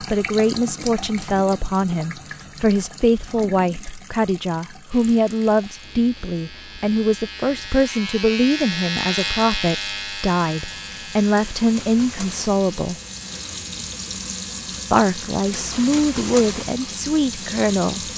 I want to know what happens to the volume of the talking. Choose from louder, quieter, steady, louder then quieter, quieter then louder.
steady.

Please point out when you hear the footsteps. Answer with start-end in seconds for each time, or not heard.
not heard.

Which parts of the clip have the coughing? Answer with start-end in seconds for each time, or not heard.
not heard.